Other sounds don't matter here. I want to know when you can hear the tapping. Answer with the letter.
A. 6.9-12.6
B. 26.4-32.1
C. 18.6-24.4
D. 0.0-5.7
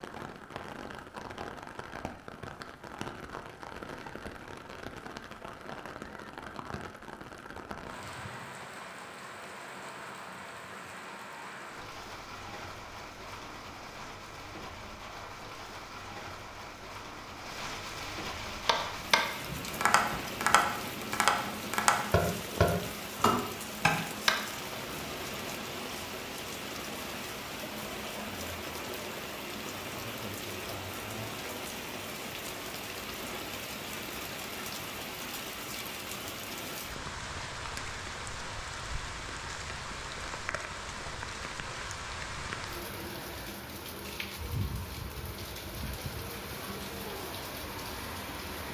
C.